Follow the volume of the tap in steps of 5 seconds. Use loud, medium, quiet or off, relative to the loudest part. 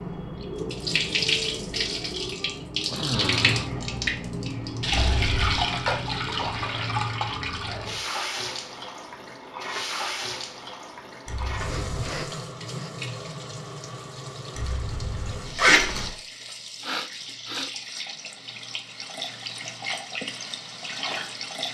loud, loud, medium, medium, medium.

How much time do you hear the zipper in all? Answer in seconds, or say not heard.
3 s.